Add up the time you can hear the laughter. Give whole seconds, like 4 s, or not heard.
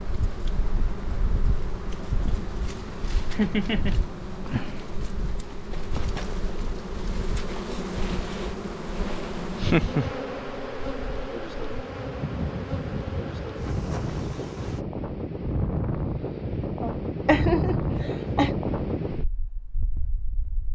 3 s.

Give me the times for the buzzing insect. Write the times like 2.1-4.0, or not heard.
0.0-14.8.